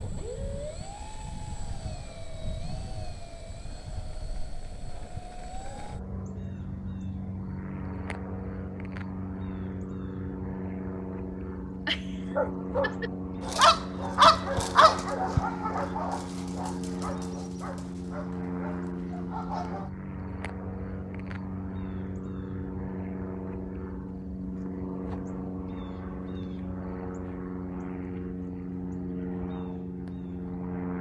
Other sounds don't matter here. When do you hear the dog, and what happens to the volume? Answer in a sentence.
You can hear the dog from 11.8 to 19.9 s, getting quieter.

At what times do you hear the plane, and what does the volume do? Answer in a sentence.
You can hear the plane from 0.0 to 30.9 s, getting louder.